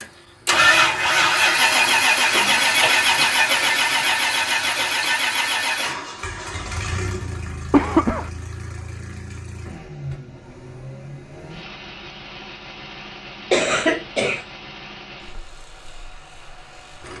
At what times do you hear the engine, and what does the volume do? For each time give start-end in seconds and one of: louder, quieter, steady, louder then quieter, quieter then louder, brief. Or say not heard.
0.0-17.1 quieter.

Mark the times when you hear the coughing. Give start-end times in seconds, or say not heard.
2.4-3.0, 7.7-8.3, 13.5-14.4.